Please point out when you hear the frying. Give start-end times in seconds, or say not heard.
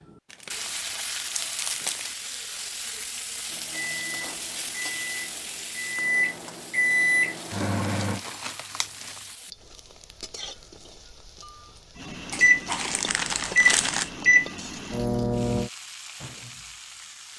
0.0-17.3.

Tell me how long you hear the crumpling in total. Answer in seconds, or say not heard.
6 s.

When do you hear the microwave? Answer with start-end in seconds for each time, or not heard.
3.5-8.2, 12.0-15.7.